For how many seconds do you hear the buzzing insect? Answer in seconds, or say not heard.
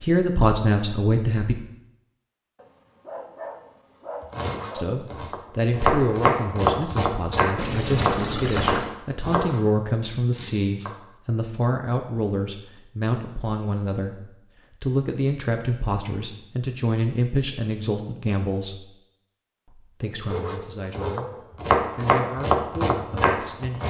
not heard.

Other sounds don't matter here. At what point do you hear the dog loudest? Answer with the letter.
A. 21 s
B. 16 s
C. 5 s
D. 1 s
A.